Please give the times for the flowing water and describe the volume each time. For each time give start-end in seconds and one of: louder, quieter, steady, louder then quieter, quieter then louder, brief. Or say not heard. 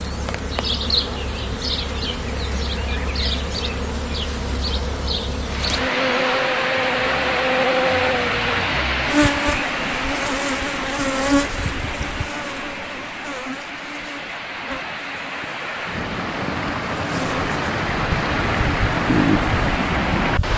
5.4-20.5 quieter then louder.